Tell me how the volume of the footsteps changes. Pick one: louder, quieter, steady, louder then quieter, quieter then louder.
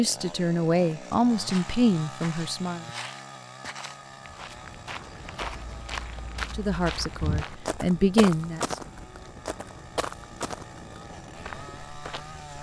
louder then quieter.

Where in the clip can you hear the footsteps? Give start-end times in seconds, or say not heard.
1.4-12.4.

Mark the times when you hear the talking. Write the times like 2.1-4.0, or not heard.
0.0-2.9, 6.5-8.8.